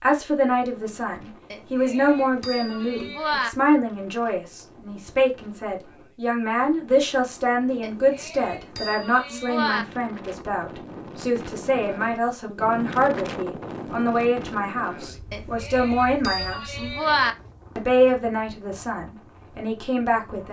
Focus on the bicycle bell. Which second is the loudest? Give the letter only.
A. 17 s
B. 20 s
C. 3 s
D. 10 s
A.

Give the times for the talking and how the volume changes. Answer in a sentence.
You can hear the talking from 0.0 to 16.8 s, at a steady volume; and briefly from 17.8 to 20.4 s.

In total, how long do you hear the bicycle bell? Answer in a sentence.
You can hear the bicycle bell for 6 seconds altogether.